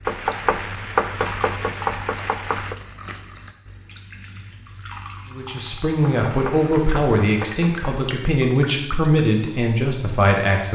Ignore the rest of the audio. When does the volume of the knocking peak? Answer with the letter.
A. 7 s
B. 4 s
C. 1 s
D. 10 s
C.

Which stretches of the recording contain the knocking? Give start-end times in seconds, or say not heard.
0.1-2.8, 6.0-8.1.